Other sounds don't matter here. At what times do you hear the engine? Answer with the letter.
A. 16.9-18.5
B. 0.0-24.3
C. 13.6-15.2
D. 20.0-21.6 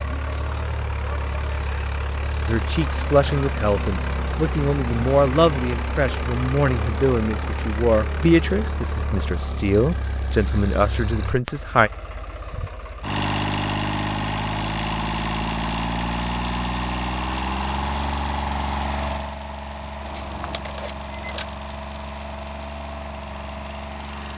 B.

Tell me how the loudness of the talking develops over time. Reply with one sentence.
The volume of the talking stays about the same.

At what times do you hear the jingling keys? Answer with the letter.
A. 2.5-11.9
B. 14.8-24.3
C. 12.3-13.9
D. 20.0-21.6
D.